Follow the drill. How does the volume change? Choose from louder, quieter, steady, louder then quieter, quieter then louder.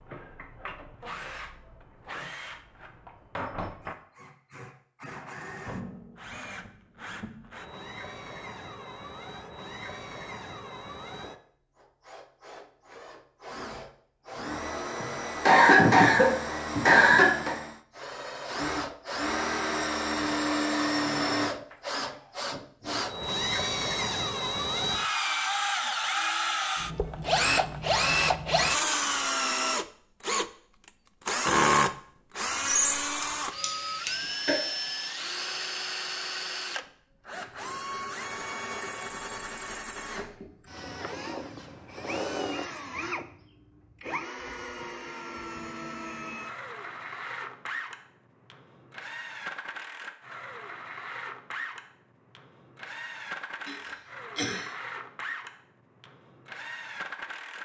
louder then quieter.